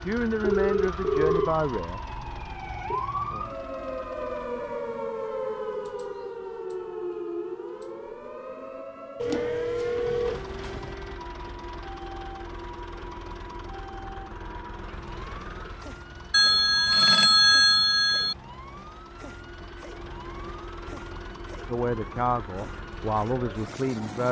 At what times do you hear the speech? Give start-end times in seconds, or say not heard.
0.0-2.0, 21.6-24.2.